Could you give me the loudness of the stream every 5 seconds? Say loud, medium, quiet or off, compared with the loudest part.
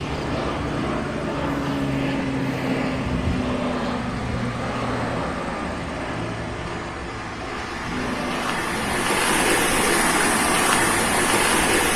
quiet, medium, loud.